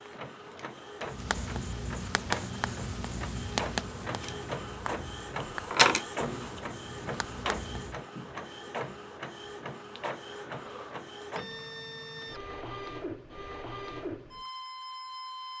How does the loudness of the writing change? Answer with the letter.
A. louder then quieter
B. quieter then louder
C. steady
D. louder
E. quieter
E.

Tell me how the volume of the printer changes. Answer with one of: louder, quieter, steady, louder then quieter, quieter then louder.
louder then quieter.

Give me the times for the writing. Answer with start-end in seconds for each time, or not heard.
1.0-8.0.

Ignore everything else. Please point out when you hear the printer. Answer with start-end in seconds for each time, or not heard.
0.0-15.5.